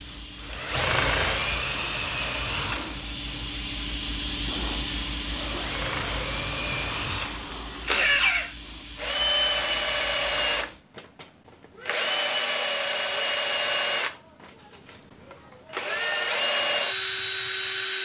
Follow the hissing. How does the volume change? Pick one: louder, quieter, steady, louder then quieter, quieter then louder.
louder then quieter.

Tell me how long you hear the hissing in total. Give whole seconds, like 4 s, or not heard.
11 s.